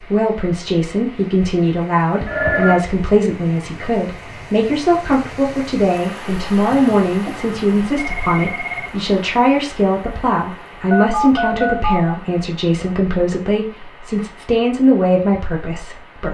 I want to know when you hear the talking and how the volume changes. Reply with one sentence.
You can hear the talking from 0.0 to 16.2 s, at a steady volume.